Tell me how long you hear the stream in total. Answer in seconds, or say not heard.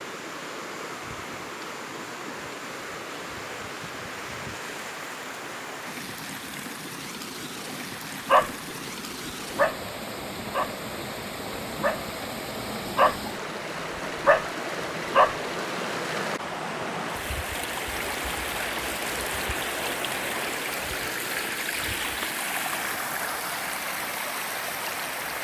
25 s.